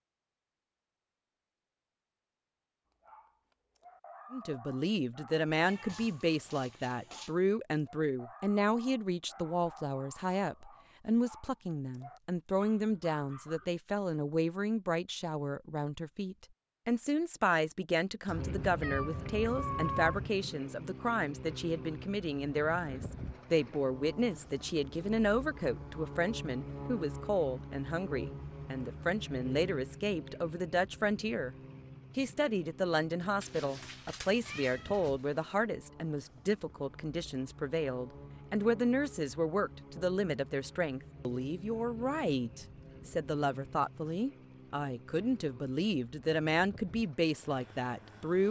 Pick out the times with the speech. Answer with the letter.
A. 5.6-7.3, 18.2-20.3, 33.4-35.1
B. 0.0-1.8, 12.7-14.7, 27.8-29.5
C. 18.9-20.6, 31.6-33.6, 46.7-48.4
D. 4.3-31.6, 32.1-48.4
D.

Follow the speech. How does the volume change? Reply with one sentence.
The loudness of the speech stays about the same.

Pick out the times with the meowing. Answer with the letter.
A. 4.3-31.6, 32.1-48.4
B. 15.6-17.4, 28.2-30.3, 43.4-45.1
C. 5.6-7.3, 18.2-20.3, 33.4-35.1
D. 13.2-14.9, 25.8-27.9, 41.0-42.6
C.